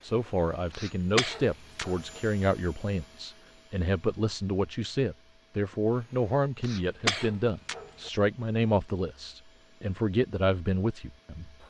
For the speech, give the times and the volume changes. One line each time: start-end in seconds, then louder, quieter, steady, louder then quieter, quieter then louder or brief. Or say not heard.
0.0-11.6 steady.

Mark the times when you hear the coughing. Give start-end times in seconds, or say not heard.
0.7-2.2, 6.6-8.1.